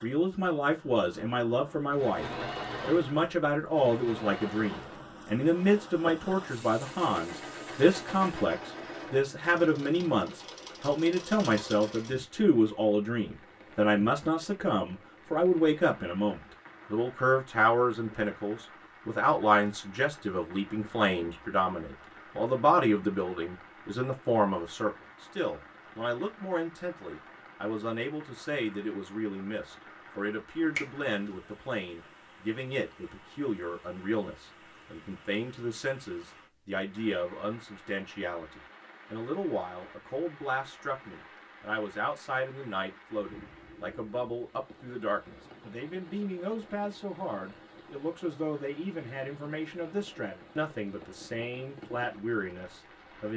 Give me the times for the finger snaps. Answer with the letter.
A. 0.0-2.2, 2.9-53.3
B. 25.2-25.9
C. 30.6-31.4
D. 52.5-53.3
C.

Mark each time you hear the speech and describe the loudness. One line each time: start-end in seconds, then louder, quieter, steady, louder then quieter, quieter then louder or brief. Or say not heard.
0.0-2.2 brief
2.9-53.3 quieter.